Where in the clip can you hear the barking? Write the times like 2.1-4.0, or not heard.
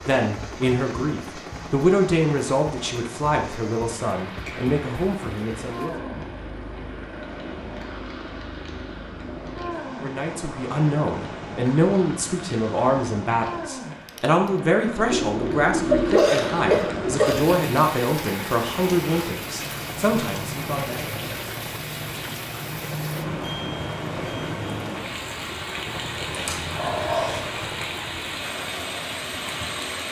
26.3-27.6.